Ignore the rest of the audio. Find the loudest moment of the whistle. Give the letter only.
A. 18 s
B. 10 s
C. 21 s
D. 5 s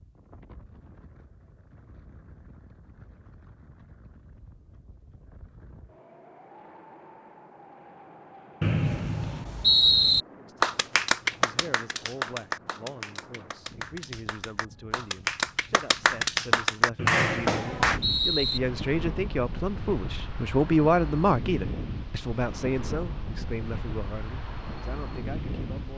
B.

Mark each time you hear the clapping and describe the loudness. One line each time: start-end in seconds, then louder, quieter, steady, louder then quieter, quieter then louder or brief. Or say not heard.
10.6-18.0 quieter then louder.